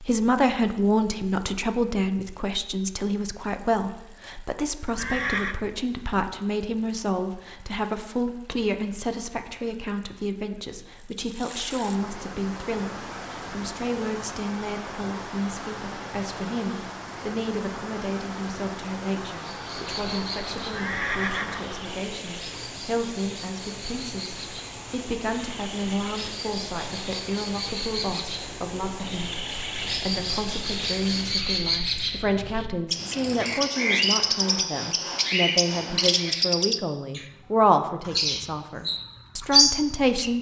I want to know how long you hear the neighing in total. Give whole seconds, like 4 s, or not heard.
2 s.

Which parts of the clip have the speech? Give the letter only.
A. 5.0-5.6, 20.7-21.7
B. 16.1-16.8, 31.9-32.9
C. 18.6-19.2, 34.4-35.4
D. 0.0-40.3
D.